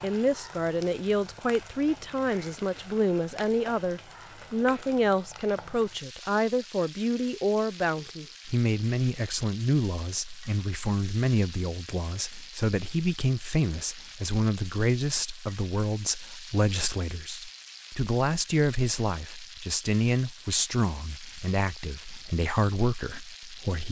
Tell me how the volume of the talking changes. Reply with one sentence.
The loudness of the talking stays about the same.